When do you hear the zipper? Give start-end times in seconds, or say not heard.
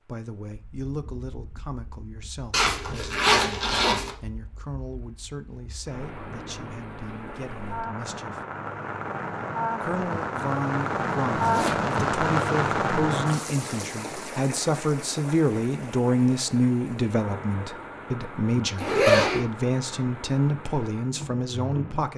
2.5-4.1, 11.3-11.9, 18.8-19.4.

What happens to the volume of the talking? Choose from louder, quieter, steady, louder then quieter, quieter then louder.
louder.